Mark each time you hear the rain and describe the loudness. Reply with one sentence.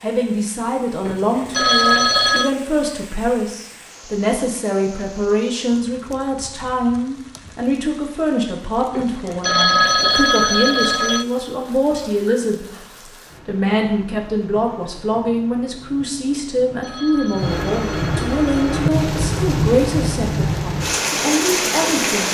You can hear the rain from 0.0 to 22.2 s, getting louder.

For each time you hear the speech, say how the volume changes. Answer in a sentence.
The speech can be heard from 0.0 to 12.8 s, at a steady volume; and from 13.4 to 22.2 s, at a steady volume.